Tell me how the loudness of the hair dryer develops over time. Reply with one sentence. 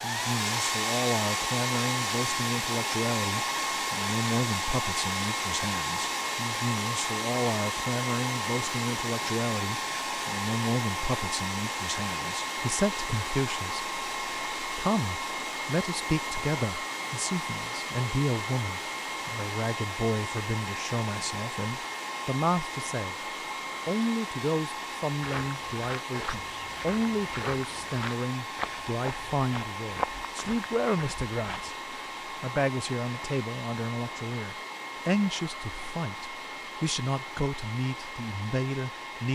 The loudness of the hair dryer goes down.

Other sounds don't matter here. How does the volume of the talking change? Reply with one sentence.
The loudness of the talking stays about the same.